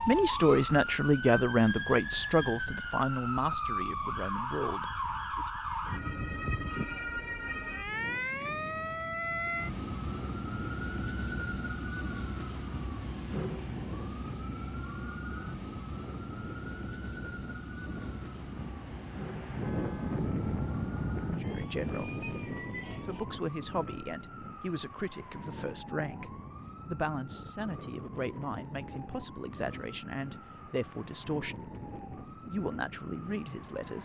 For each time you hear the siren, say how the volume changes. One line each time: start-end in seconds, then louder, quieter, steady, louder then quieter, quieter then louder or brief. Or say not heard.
0.0-33.8 quieter.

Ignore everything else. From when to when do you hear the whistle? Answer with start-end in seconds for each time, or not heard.
not heard.